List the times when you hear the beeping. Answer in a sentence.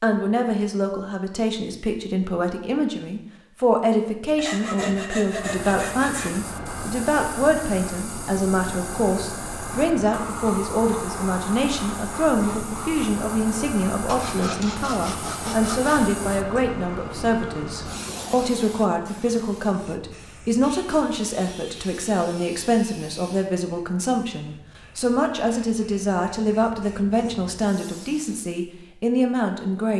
You can't hear the beeping here.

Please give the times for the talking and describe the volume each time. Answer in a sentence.
You can hear the talking from 0.0 to 29.9 s, at a steady volume.